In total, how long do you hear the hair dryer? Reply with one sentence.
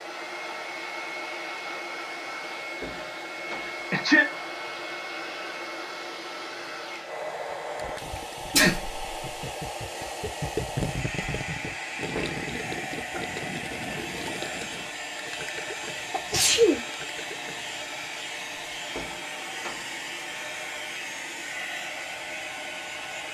The hair dryer can be heard for 23 seconds in total.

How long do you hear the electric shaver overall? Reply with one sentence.
You can't hear the electric shaver here.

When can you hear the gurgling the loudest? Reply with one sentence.
The volume of the gurgling peaks at 11 seconds.